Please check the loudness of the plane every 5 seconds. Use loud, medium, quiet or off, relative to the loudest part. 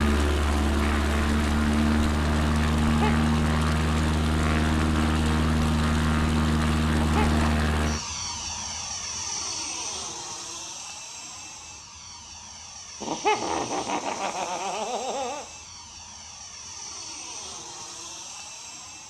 loud, loud, quiet, quiet.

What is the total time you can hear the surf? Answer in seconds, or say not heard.
not heard.